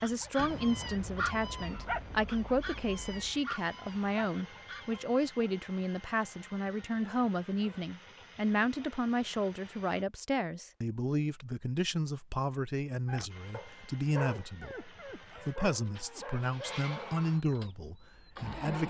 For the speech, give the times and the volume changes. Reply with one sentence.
You can hear the speech from 0.0 to 18.8 s, at a steady volume.